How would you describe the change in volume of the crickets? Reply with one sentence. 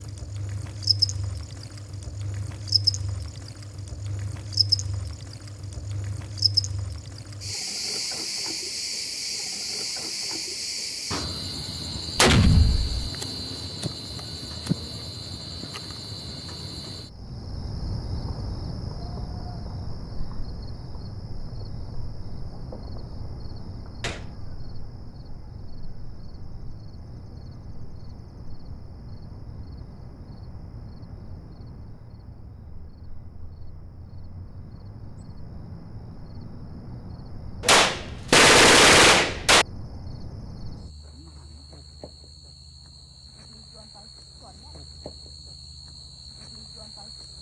The volume of the crickets goes down.